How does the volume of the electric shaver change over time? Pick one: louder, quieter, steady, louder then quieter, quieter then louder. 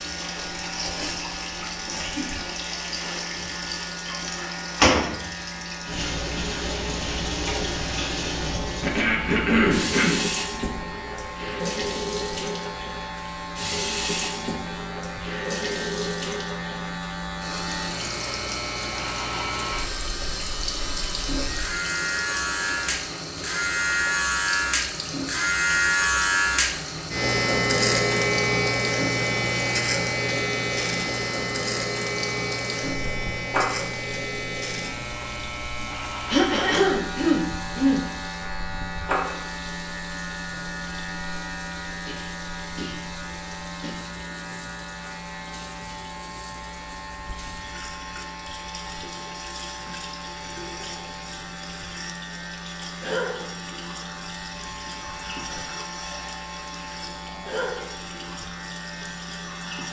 louder then quieter.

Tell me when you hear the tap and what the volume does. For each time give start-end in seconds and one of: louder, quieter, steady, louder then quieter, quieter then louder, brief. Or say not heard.
0.0-59.8 quieter.